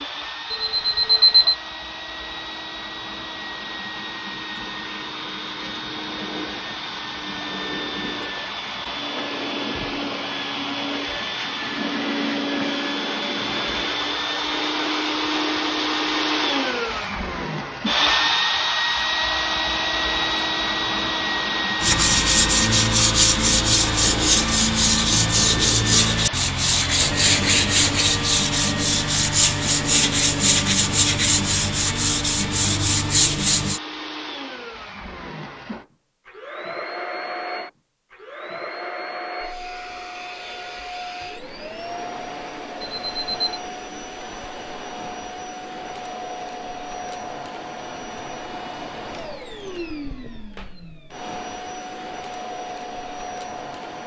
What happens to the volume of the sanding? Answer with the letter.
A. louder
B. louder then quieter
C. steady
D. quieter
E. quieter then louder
C.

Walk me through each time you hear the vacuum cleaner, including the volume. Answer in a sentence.
The vacuum cleaner can be heard from 0.0 to 54.0 s, getting louder then quieter.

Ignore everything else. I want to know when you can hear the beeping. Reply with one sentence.
You can hear the beeping from 0.5 to 1.6 s and from 43.0 to 43.5 s.